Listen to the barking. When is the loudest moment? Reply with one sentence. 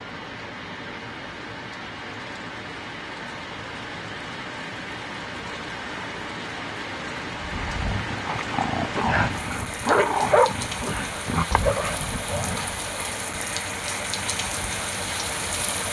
The volume of the barking peaks at 10 seconds.